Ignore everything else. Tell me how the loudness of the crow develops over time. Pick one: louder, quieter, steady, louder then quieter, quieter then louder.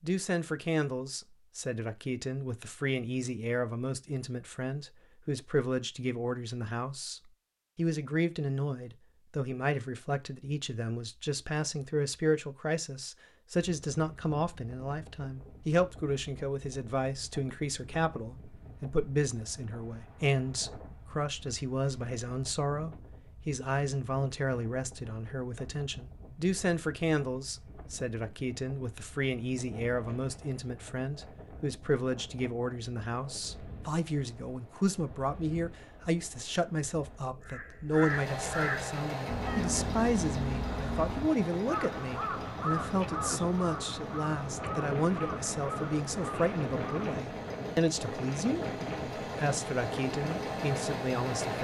quieter.